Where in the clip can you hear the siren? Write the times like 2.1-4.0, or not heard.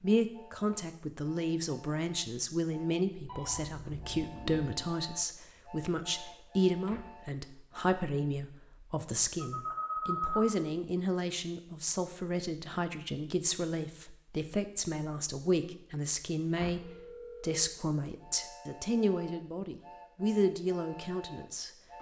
not heard.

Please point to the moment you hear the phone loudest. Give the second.
10 s.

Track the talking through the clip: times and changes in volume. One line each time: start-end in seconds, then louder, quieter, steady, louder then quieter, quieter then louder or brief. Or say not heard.
0.0-21.7 steady.